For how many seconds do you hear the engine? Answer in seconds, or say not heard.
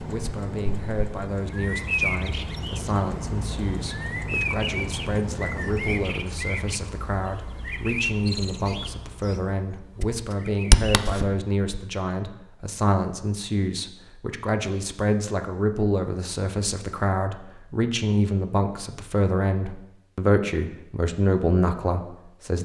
6 s.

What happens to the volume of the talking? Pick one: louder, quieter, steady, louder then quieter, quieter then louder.
louder.